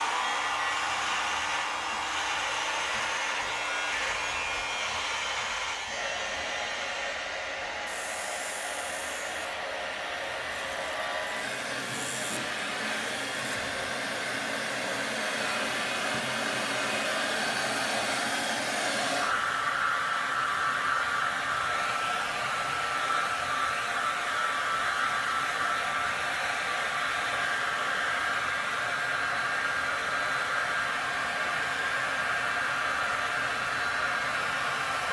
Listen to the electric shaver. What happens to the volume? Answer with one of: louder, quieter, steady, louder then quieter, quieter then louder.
quieter.